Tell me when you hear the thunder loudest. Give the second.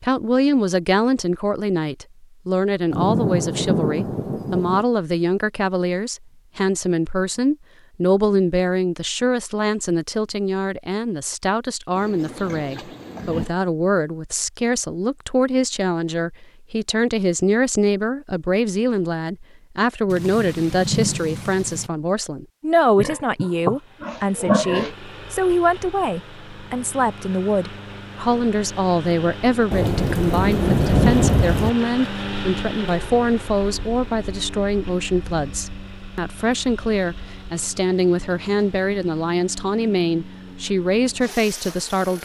31 s.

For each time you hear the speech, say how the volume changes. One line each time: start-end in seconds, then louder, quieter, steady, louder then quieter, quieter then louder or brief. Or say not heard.
0.0-42.2 steady.